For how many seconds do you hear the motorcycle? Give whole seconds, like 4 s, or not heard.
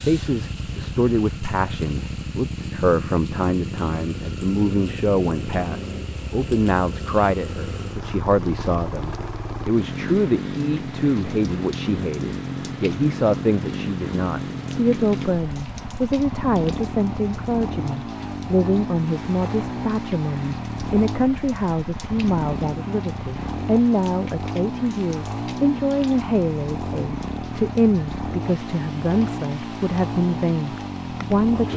32 s.